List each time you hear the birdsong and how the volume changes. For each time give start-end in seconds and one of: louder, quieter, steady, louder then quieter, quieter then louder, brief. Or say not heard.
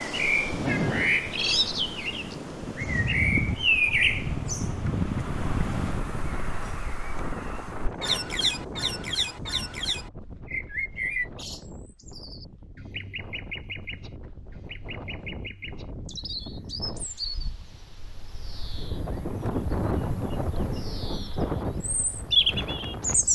0.0-23.3 quieter then louder.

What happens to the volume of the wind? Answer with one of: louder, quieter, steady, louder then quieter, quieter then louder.
quieter then louder.